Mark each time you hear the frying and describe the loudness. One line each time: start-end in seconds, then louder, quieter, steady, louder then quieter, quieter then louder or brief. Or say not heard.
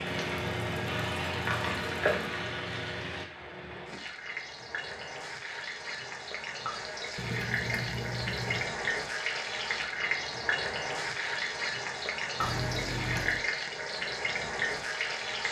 0.0-15.4 quieter then louder.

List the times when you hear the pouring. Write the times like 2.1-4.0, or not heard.
0.1-2.5, 7.2-8.8, 12.4-13.4.